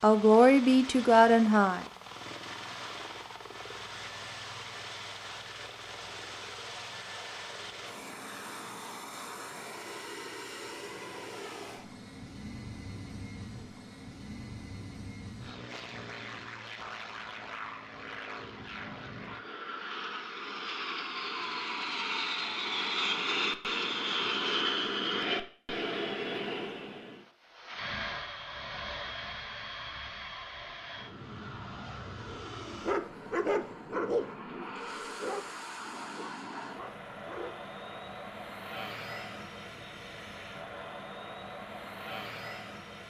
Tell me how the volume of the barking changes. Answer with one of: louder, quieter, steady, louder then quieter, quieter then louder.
quieter.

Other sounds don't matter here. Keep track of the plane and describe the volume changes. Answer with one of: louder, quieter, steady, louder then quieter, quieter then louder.
louder then quieter.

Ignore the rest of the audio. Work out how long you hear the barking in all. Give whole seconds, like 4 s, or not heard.
5 s.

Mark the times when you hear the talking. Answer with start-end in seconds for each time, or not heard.
0.0-1.9.